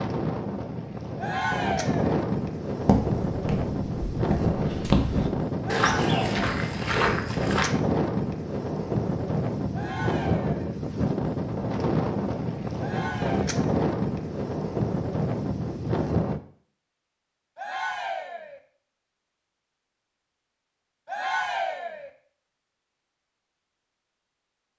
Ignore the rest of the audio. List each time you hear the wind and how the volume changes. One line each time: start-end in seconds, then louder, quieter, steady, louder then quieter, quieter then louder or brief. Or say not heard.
0.0-16.4 steady.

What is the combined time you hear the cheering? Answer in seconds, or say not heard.
6 s.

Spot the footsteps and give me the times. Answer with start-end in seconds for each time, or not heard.
2.9-7.7.